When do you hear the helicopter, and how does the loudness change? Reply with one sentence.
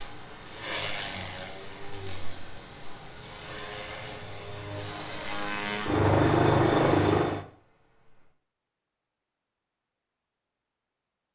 The helicopter can be heard from 0.0 to 7.5 s, getting louder.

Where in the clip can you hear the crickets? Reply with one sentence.
You can hear the crickets from 0.0 to 8.3 s.